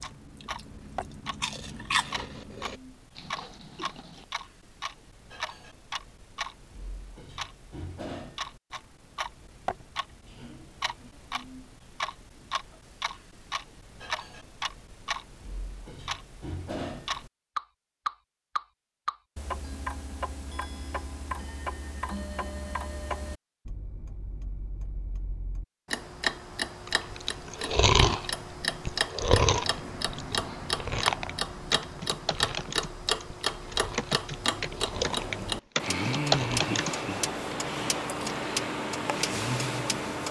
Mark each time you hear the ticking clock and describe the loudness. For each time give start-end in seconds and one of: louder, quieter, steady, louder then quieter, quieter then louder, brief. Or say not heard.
0.0-40.2 louder.